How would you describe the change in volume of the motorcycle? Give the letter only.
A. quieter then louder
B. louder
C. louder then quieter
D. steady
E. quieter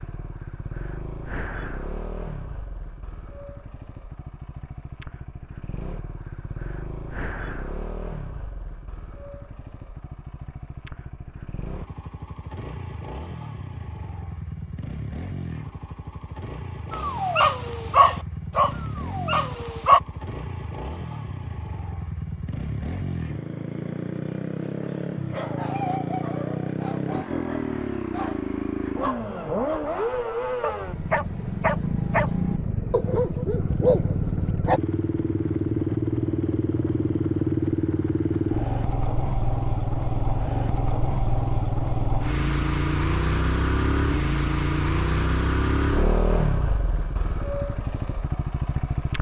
B.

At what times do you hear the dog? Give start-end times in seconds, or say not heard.
16.9-20.0, 24.8-34.8.